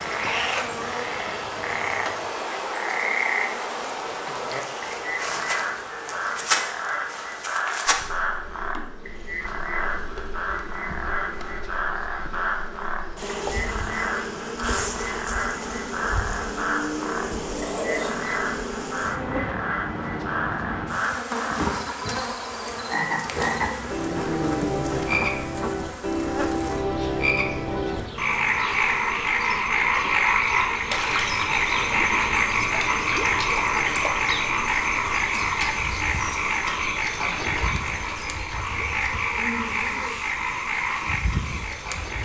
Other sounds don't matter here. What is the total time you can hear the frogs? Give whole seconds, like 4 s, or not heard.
42 s.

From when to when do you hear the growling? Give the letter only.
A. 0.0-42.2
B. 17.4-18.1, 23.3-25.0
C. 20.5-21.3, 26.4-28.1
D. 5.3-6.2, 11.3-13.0
B.